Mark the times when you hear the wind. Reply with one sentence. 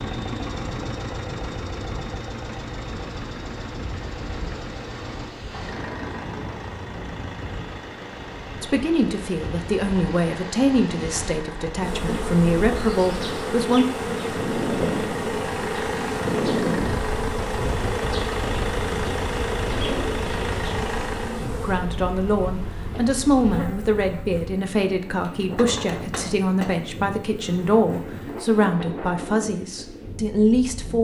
You can hear the wind from 0.0 to 30.9 s.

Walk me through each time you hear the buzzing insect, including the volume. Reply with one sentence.
You can hear the buzzing insect from 11.8 to 28.6 s, getting quieter.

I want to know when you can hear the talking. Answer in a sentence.
The talking can be heard from 8.6 to 13.8 s and from 21.4 to 30.9 s.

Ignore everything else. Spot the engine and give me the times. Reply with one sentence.
The engine can be heard from 0.0 to 21.4 s.